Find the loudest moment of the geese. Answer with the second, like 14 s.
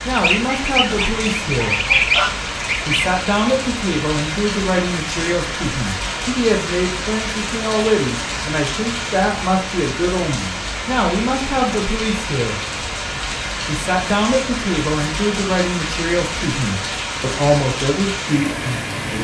2 s.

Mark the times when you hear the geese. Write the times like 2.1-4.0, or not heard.
0.1-3.1.